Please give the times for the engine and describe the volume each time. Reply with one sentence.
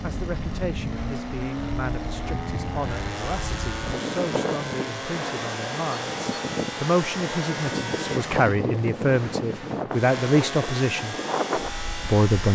You can hear the engine from 0.0 to 12.4 s, at a steady volume.